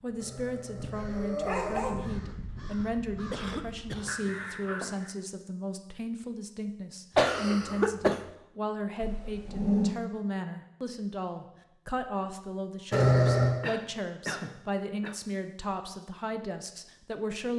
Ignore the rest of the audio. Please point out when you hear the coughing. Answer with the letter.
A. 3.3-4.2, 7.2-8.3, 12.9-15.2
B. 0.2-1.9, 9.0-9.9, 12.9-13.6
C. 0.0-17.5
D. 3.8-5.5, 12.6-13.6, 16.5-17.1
A.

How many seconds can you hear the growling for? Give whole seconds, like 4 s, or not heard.
3 s.